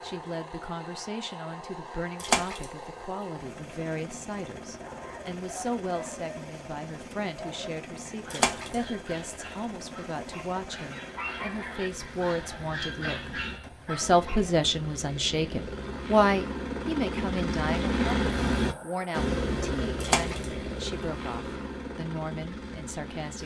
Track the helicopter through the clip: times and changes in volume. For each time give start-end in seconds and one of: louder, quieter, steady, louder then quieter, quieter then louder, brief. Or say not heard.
0.0-23.4 louder.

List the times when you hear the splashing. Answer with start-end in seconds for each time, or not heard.
2.1-2.6, 8.3-8.8, 20.0-20.4.